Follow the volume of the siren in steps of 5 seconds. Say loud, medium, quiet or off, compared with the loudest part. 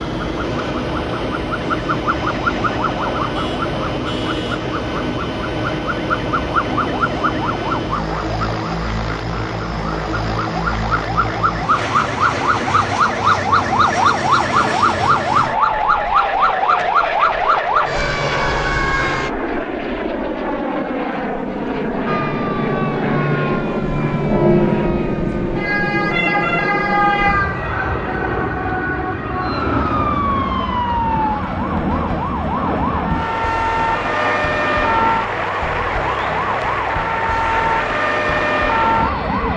medium, medium, loud, loud, loud, loud, loud, loud.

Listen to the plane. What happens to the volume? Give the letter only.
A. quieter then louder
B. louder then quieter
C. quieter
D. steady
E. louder
D.